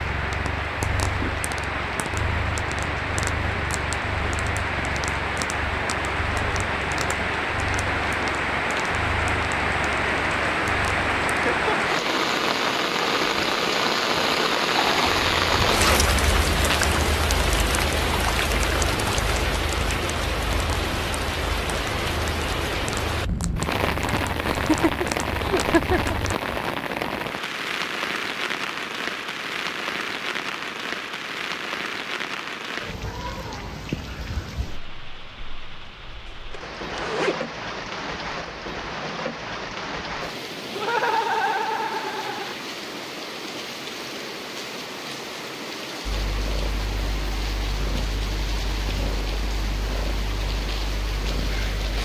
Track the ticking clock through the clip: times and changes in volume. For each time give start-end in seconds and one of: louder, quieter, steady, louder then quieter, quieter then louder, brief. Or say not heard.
not heard.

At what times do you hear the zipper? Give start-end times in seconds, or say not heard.
15.1-16.9, 36.2-37.5.